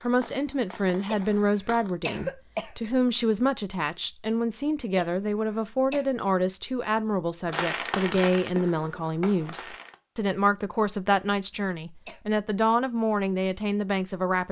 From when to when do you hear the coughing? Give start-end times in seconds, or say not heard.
1.1-2.8, 5.0-6.0, 11.1-12.2.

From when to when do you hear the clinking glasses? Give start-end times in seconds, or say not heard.
not heard.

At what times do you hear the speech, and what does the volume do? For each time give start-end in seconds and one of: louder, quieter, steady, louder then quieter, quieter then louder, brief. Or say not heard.
0.0-14.4 steady.